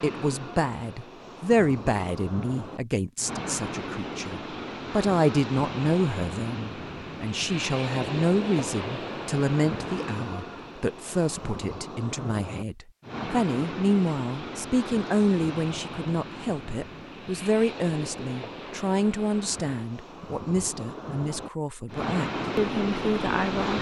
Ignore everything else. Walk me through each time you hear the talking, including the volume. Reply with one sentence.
You can hear the talking from 0.0 to 23.7 s, at a steady volume.